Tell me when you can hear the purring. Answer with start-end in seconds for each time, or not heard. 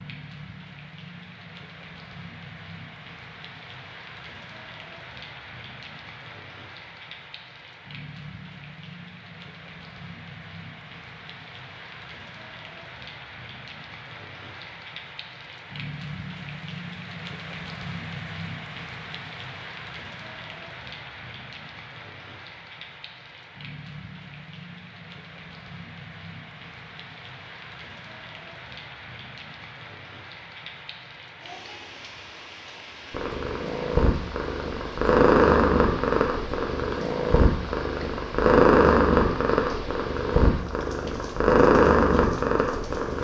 33.1-43.1.